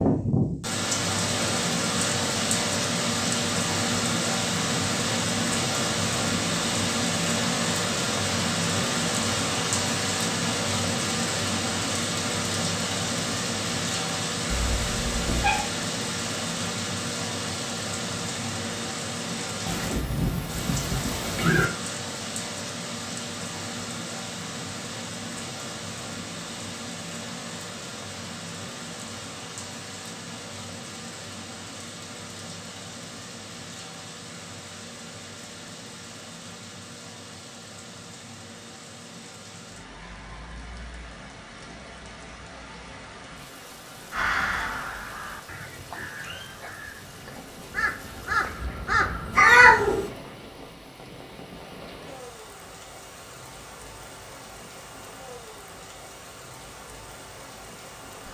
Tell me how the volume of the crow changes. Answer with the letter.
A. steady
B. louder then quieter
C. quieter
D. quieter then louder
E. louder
D.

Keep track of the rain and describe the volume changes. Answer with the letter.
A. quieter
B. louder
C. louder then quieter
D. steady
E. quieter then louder
A.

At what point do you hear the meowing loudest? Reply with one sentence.
The loudest moment of the meowing is at 50 seconds.